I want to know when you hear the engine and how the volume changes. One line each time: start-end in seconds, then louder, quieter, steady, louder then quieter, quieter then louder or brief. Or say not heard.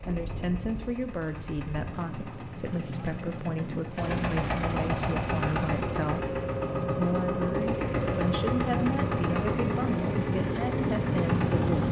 0.0-11.8 louder.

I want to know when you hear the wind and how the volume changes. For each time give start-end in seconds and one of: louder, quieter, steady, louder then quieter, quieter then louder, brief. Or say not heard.
0.0-11.8 louder.